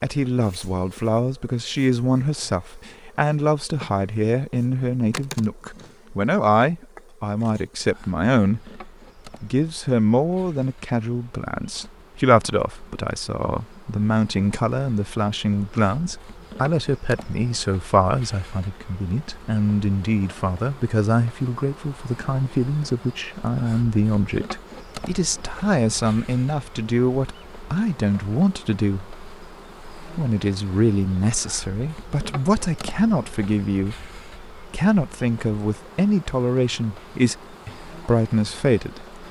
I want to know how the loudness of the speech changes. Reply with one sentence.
The volume of the speech stays about the same.